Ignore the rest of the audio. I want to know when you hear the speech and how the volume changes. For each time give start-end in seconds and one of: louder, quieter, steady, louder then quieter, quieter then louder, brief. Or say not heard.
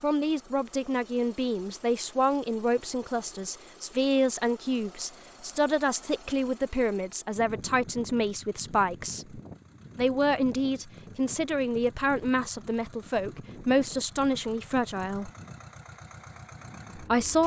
0.0-15.3 steady
16.9-17.4 brief.